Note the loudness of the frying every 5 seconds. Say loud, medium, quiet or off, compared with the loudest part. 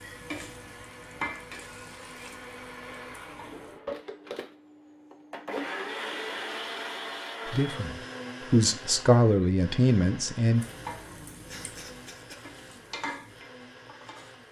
loud, off, loud.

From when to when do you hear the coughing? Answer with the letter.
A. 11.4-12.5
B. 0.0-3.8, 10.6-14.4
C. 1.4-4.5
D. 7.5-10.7
A.